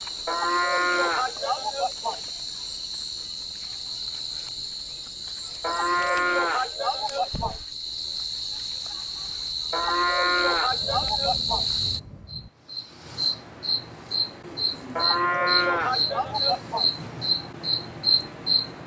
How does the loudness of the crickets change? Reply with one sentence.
The loudness of the crickets goes up.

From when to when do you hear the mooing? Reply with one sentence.
You can hear the mooing from 0.2 to 2.2 s, from 5.6 to 7.6 s, from 9.7 to 11.7 s and from 14.9 to 16.9 s.